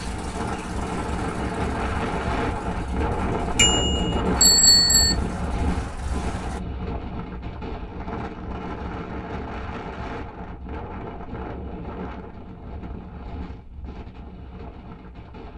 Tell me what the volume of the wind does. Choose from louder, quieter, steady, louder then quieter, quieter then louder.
quieter.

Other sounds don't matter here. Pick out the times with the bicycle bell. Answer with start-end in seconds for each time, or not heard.
3.5-5.2.